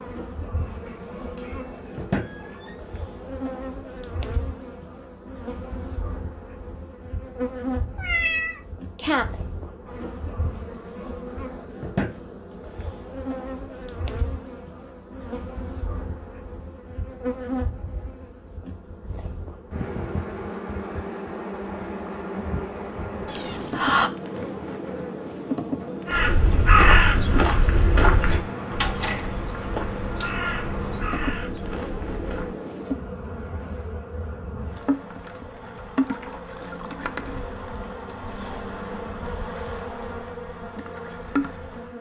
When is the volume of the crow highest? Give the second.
27 s.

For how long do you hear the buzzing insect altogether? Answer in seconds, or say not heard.
42 s.